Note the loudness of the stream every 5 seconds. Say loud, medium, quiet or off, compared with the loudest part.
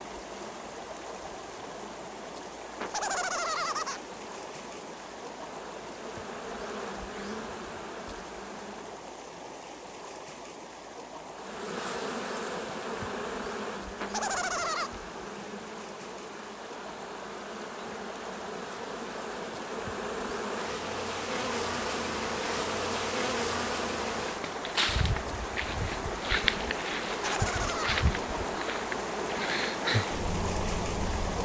medium, medium, medium, medium, medium, loud, loud.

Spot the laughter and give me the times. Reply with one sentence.
You can hear the laughter from 2.8 to 4.0 s, from 14.0 to 14.9 s and from 27.1 to 28.1 s.